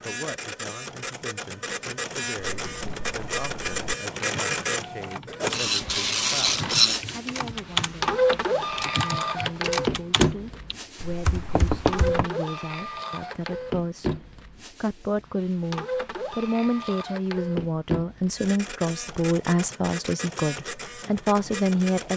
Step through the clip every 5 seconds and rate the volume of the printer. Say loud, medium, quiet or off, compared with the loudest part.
medium, loud, medium, medium, medium.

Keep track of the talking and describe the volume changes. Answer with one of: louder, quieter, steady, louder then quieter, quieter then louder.
louder.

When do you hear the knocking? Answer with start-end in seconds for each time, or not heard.
11.3-12.3.